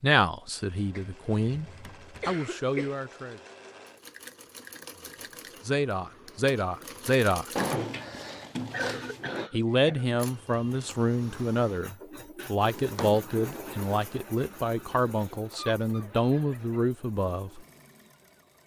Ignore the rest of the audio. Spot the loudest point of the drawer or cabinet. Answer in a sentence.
The volume of the drawer or cabinet peaks at 8 seconds.